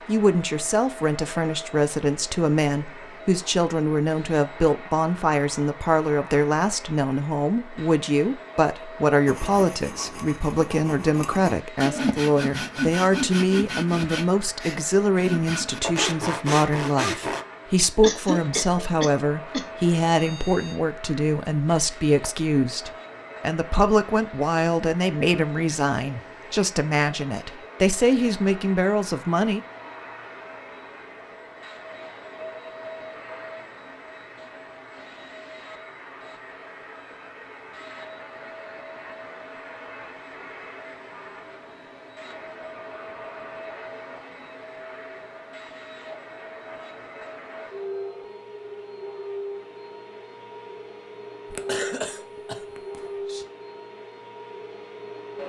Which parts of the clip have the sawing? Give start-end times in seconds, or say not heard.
9.2-17.4.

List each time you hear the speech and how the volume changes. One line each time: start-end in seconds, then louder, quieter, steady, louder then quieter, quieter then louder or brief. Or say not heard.
0.1-29.6 steady.